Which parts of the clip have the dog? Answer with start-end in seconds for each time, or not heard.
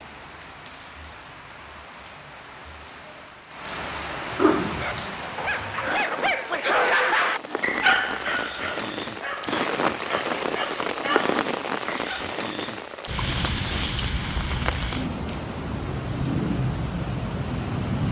4.6-12.3.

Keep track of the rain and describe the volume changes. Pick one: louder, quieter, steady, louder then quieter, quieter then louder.
louder.